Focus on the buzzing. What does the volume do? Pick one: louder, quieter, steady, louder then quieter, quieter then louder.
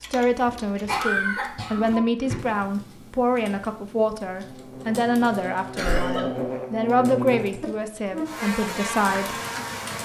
louder.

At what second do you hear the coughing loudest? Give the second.
1 s.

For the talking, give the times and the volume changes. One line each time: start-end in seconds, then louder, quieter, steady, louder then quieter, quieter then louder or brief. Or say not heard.
0.0-9.3 steady.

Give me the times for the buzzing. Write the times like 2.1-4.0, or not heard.
4.4-9.9.